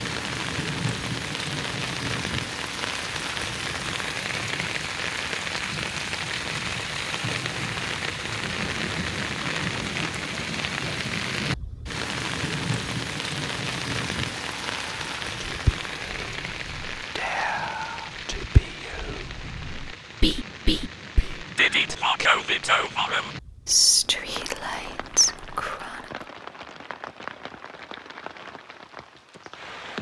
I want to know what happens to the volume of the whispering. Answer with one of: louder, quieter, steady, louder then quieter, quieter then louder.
louder.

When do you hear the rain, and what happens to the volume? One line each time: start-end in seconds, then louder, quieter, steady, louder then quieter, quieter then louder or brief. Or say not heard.
0.0-29.9 quieter.